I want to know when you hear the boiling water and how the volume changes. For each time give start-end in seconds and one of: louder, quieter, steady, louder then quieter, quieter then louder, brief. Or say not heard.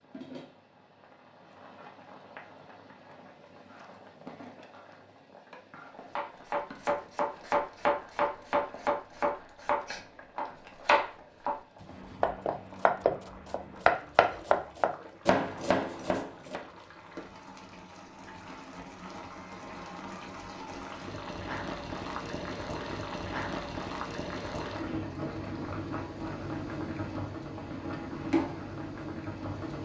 0.0-29.8 louder.